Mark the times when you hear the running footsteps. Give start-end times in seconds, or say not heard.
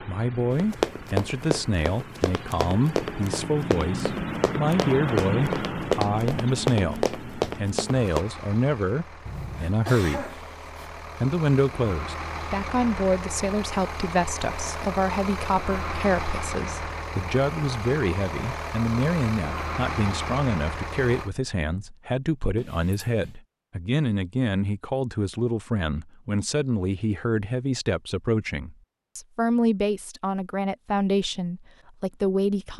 0.5-8.2.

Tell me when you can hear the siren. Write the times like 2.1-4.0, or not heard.
not heard.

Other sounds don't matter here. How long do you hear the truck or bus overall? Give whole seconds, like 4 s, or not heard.
21 s.